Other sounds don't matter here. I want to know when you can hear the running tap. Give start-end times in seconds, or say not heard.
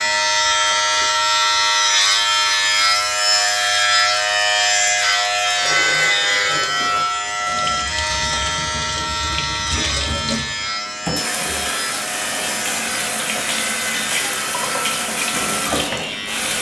0.0-16.5.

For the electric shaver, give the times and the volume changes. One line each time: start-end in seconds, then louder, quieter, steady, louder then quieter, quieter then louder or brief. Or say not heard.
0.0-16.5 quieter.